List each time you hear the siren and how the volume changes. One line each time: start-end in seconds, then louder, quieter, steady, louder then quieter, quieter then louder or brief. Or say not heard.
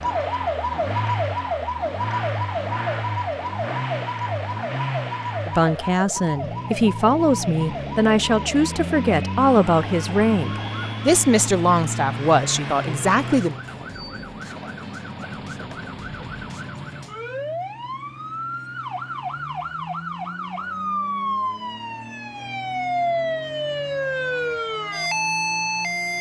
0.0-26.1 quieter then louder.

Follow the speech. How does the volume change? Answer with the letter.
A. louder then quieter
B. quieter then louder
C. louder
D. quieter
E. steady
E.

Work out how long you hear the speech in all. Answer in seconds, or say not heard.
8 s.